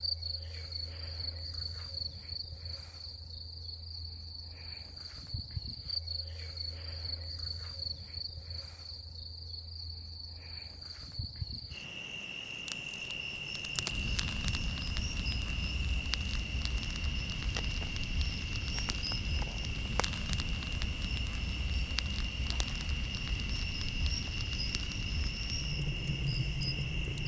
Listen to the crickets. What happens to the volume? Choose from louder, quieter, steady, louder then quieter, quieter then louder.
steady.